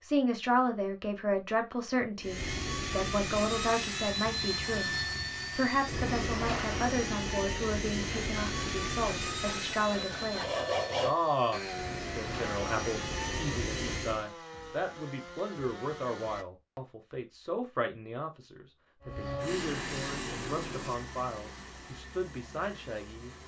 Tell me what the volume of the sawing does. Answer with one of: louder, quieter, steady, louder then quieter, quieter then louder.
louder then quieter.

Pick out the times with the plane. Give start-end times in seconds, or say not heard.
2.2-14.2, 19.0-23.4.